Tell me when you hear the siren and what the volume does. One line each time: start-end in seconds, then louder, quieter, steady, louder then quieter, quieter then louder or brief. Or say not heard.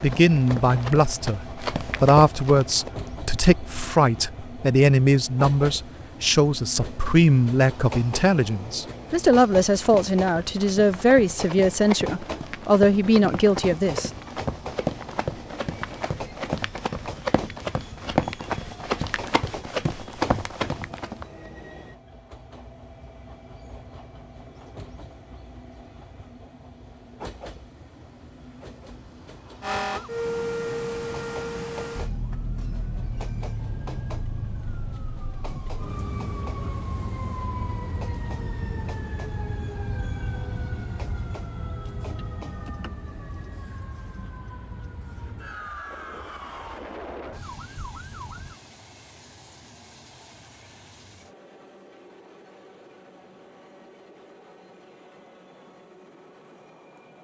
29.6-48.6 quieter.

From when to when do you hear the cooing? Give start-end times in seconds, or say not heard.
not heard.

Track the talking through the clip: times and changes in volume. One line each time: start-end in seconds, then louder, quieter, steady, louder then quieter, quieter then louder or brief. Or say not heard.
0.0-14.1 steady.